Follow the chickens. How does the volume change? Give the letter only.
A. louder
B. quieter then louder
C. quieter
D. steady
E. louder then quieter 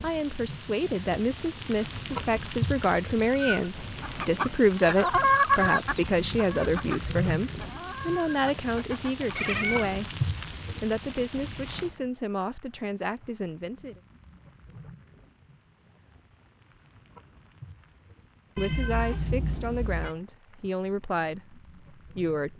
C.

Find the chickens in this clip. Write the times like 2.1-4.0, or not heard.
4.0-9.5.